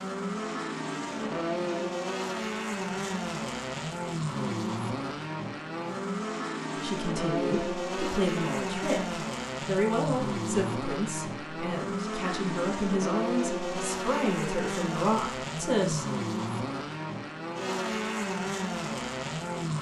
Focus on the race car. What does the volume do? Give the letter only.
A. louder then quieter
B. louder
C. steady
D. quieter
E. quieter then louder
C.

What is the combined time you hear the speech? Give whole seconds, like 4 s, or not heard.
9 s.